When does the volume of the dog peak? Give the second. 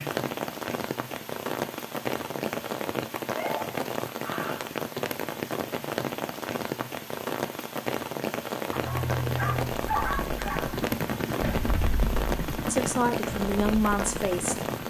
10 s.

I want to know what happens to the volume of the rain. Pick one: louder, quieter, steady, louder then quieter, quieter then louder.
steady.